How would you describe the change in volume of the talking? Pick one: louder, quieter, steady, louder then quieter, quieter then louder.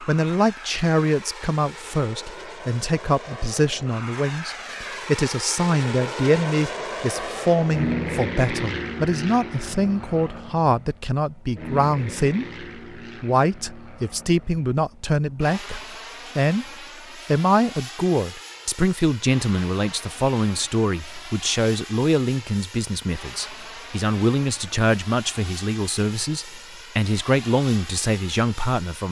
steady.